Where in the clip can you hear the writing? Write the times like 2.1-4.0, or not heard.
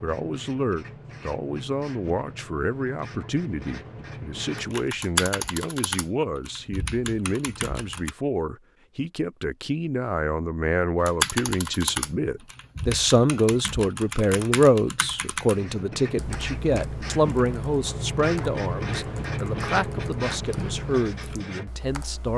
0.0-4.8, 15.5-21.7.